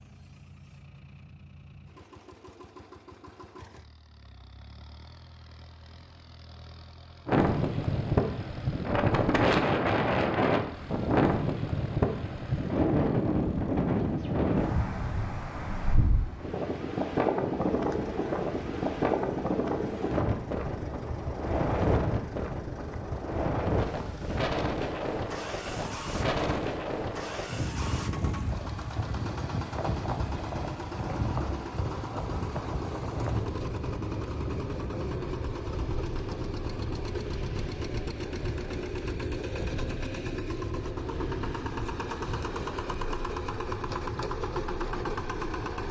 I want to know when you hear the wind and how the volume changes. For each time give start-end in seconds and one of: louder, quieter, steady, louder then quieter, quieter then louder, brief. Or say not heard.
7.2-45.8 quieter.